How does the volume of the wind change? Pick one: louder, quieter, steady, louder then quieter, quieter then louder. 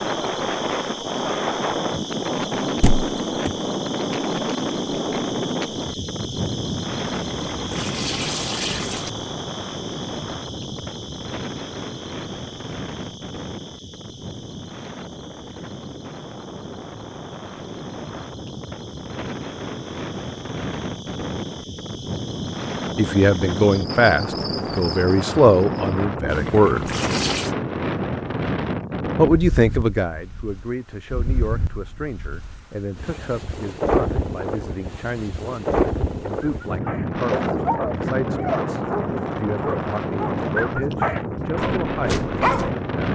quieter then louder.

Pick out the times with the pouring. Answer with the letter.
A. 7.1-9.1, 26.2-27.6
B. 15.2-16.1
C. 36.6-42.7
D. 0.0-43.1
A.